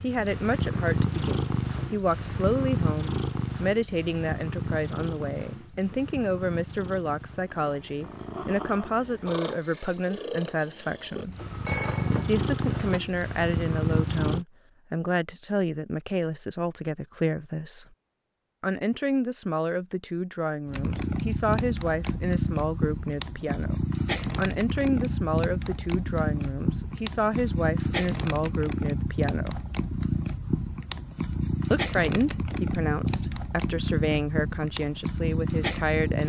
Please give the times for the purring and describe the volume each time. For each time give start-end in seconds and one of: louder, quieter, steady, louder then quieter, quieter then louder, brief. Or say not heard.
0.0-14.4 quieter then louder
20.6-36.2 steady.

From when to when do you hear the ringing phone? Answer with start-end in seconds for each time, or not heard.
11.4-13.0.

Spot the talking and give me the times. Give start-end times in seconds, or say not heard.
0.0-11.3, 12.2-17.9, 18.6-29.6, 31.7-36.2.